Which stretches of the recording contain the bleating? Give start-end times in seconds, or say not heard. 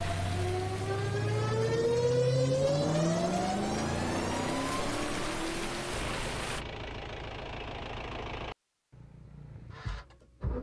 not heard.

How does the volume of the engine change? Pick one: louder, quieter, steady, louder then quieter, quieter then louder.
quieter.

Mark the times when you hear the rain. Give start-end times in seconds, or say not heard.
0.0-6.7.